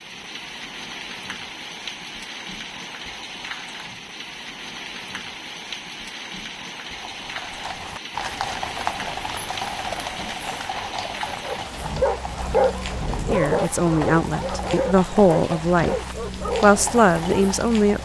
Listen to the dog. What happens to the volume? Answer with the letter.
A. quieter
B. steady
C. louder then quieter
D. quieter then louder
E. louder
A.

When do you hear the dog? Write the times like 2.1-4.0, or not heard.
11.4-17.6.